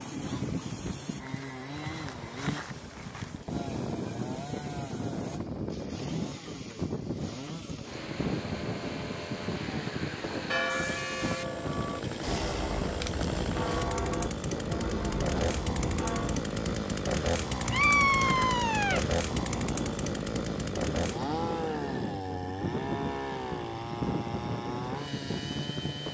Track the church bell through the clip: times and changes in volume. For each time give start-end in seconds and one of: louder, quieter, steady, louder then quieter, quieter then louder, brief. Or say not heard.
10.4-16.4 steady.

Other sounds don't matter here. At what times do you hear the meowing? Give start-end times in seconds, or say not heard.
17.7-19.1.